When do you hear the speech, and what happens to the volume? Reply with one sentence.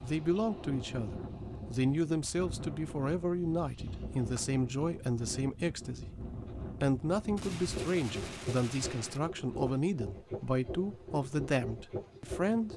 The speech can be heard from 0.0 to 12.7 s, at a steady volume.